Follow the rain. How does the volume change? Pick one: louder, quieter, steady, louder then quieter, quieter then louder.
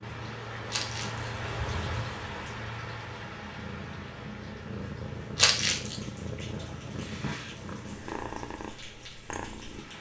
quieter.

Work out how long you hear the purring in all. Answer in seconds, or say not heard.
10 s.